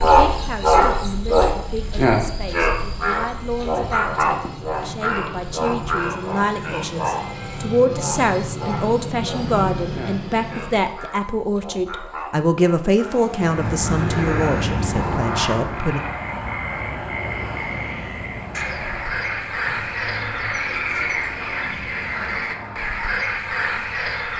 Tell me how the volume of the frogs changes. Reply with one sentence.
The volume of the frogs goes down, then up.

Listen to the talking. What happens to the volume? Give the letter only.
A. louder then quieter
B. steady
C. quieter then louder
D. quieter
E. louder
E.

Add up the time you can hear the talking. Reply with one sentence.
You can hear the talking for 16 seconds altogether.